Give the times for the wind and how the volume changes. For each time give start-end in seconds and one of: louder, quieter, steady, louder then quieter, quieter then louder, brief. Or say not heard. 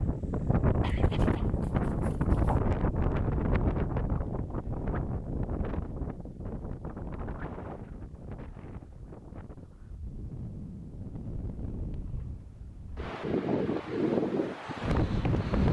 0.0-15.6 quieter then louder.